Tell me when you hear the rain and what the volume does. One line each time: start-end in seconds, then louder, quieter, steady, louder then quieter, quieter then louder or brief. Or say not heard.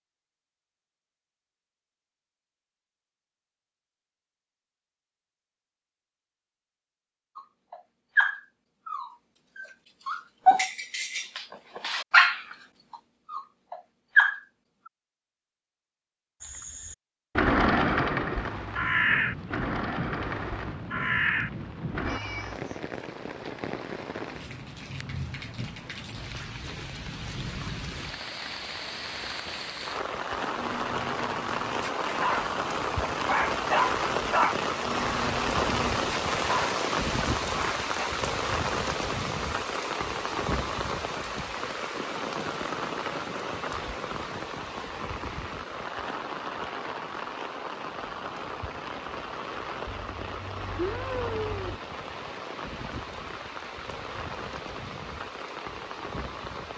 18.4-56.7 louder then quieter.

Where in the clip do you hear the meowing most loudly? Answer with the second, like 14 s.
51 s.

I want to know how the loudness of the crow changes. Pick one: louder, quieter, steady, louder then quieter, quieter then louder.
quieter then louder.